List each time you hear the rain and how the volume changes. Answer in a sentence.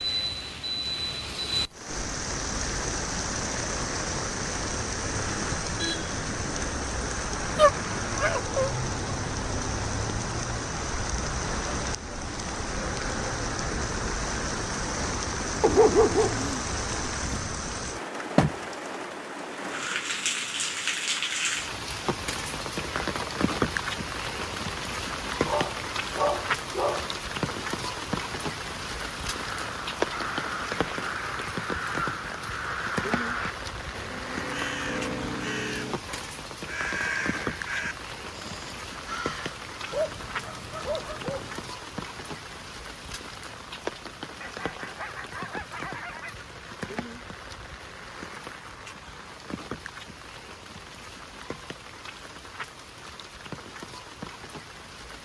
You can hear the rain from 0.0 to 55.2 s, getting quieter.